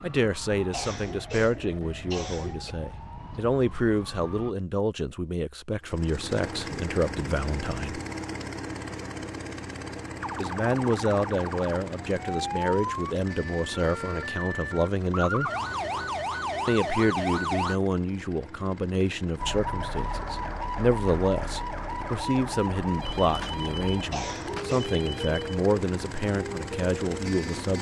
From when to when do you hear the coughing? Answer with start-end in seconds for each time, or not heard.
0.7-2.8, 24.1-24.9.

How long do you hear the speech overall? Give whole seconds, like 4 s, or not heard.
24 s.